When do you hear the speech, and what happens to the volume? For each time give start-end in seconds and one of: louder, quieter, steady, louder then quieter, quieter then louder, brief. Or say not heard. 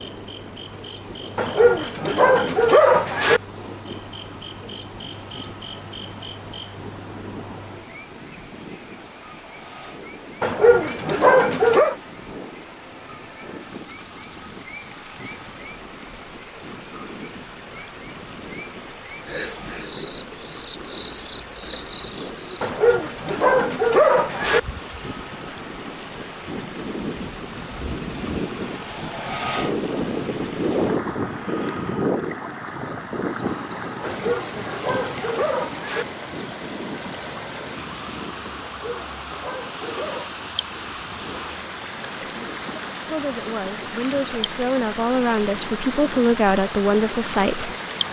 42.2-47.7 louder.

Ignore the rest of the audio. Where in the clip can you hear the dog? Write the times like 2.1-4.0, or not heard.
1.4-3.4, 10.4-11.9, 22.6-24.6, 34.0-36.0, 38.6-40.4.